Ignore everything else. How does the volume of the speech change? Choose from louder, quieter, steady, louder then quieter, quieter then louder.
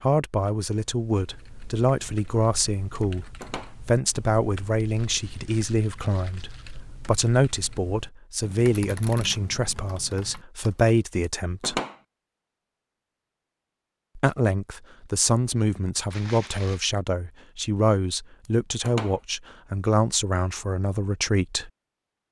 steady.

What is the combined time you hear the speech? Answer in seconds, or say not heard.
19 s.